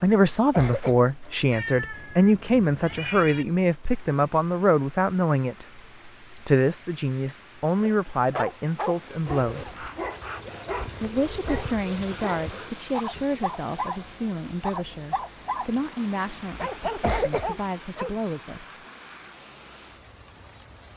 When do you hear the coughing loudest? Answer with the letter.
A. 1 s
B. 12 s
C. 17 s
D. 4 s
C.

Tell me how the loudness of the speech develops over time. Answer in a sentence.
The loudness of the speech goes down.